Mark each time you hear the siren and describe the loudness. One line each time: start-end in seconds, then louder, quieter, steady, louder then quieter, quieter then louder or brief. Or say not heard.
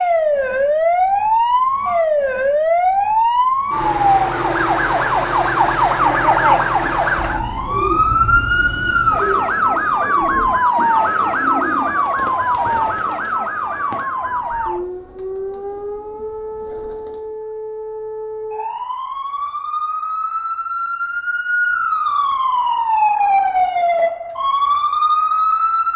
0.0-25.9 quieter then louder.